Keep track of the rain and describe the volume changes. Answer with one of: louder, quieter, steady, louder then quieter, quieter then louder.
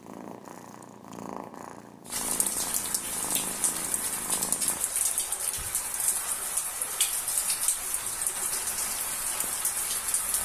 steady.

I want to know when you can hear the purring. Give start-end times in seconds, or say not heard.
0.0-4.8.